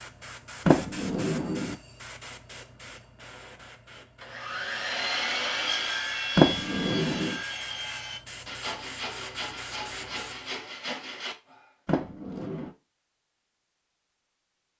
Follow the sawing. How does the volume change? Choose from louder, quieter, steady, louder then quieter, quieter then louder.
quieter.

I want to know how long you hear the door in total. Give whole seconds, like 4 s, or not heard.
3 s.